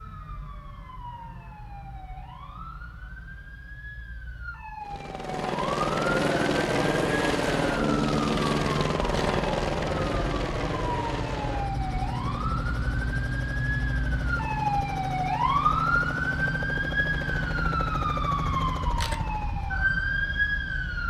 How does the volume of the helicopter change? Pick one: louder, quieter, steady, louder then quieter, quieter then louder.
quieter.